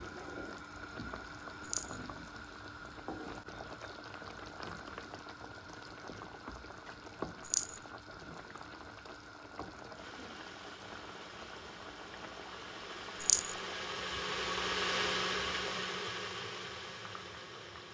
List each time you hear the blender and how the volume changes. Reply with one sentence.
The blender can be heard from 9.9 to 17.8 s, getting louder then quieter.